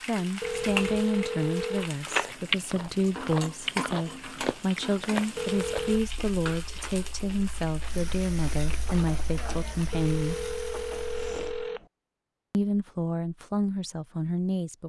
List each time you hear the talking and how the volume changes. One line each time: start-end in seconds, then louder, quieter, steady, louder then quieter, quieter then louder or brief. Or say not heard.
0.1-10.4 steady
12.5-14.8 brief.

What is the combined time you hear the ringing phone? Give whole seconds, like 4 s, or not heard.
4 s.